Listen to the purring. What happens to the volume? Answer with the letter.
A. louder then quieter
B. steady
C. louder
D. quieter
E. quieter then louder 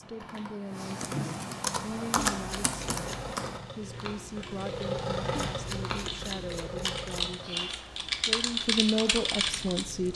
A.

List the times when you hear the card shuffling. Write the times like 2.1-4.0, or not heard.
2.3-3.4, 5.3-7.3.